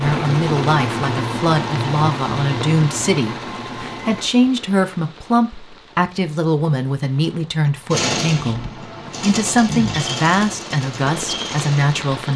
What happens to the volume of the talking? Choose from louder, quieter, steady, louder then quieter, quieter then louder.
steady.